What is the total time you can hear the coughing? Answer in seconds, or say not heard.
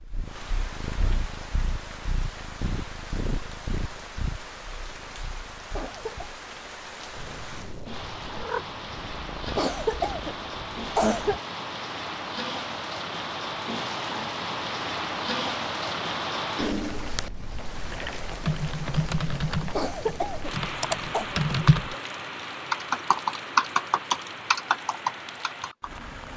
4 s.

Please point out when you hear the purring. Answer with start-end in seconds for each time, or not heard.
0.0-11.4.